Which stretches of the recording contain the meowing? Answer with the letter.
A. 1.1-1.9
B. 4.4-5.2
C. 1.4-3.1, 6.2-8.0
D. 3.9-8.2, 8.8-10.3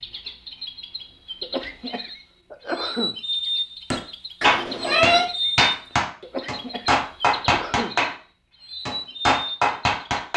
B.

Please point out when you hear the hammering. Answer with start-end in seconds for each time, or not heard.
3.9-8.2, 8.8-10.3.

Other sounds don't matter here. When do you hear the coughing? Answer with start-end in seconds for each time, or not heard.
1.4-3.1, 6.2-8.0.